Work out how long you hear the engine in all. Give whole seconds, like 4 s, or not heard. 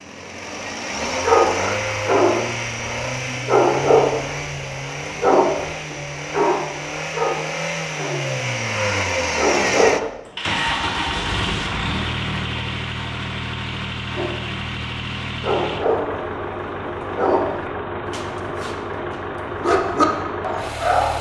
21 s.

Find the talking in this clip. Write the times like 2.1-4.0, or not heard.
not heard.